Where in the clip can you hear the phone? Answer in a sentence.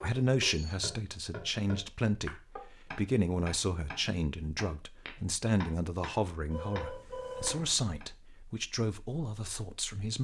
The phone can be heard from 0.1 to 0.8 s and from 6.5 to 7.8 s.